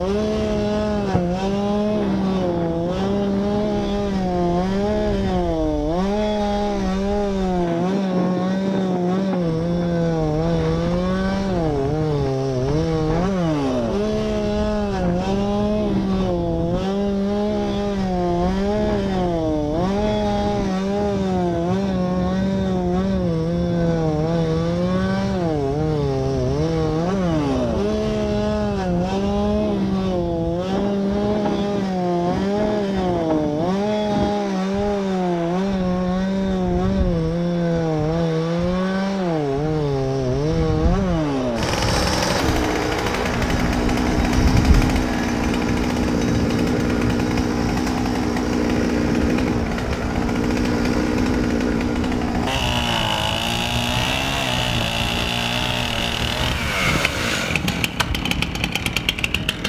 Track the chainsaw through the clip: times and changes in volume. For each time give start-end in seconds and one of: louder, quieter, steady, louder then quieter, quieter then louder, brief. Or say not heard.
0.0-59.6 steady.